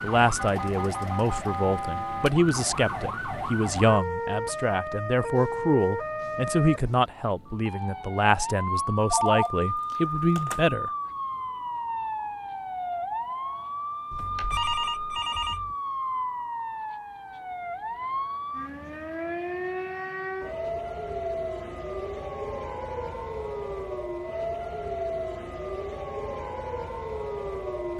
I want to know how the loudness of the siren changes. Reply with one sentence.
The loudness of the siren stays about the same.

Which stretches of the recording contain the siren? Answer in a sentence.
The siren can be heard from 0.0 to 27.9 s.